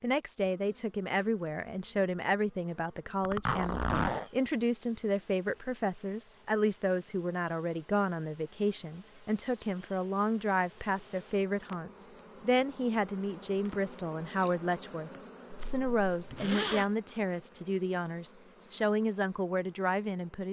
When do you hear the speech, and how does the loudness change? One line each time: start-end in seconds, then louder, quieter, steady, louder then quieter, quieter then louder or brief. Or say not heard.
0.0-20.4 steady.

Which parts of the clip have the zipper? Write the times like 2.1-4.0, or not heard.
3.2-4.3, 15.6-16.9.